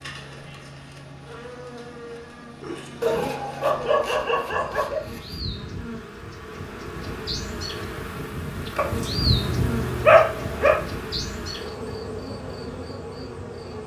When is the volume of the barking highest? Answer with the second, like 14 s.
10 s.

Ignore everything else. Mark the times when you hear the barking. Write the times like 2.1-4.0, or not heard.
3.0-5.3, 8.8-10.8.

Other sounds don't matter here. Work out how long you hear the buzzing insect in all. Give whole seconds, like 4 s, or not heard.
14 s.